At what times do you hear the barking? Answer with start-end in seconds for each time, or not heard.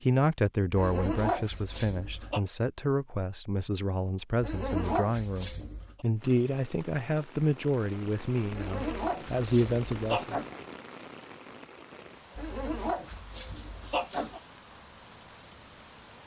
0.8-2.4, 4.4-6.0, 8.5-10.6, 12.3-14.4.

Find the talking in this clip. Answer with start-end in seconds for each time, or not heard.
0.0-10.4.